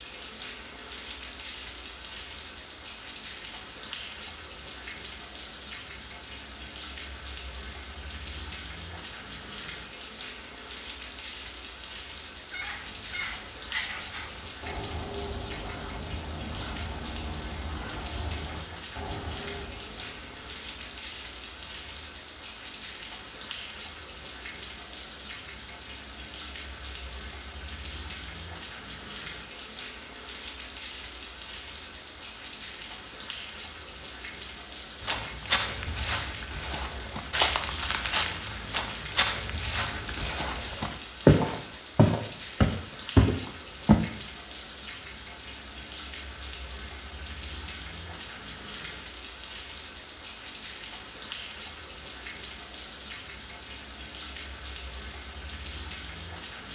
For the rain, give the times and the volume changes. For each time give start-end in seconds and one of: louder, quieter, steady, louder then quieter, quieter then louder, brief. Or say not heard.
0.0-56.7 steady.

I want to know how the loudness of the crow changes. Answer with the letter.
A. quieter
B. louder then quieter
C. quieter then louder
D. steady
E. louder
A.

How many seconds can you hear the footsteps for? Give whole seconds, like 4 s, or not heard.
9 s.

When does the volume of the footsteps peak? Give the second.
41 s.